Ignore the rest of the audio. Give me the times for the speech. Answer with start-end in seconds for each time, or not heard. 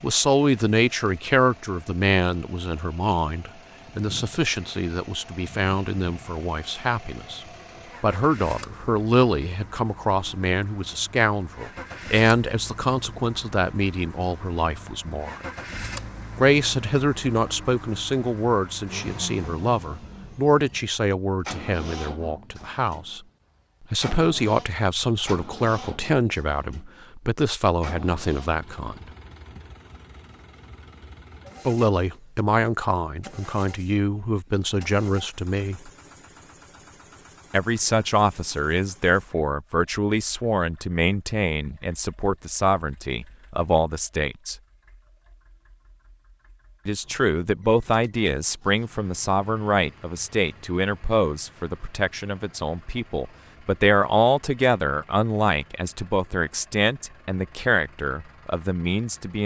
0.0-15.4, 16.4-23.2, 23.9-29.1, 31.6-35.9, 37.5-44.5, 46.9-59.4.